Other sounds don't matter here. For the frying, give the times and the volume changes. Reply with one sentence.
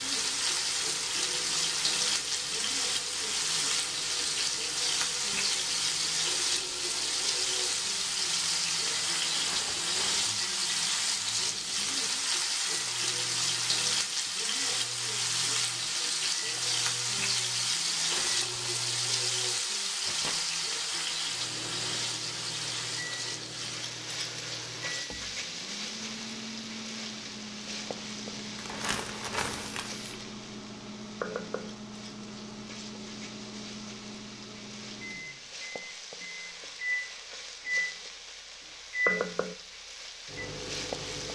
The frying can be heard from 0.0 to 41.2 s, getting quieter.